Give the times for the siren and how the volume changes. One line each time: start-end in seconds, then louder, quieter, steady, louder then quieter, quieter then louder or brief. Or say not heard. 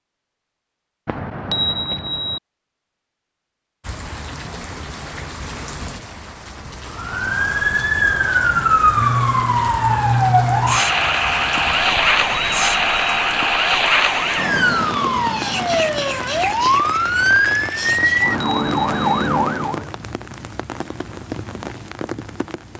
6.8-19.9 steady.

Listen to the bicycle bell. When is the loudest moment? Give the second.
2 s.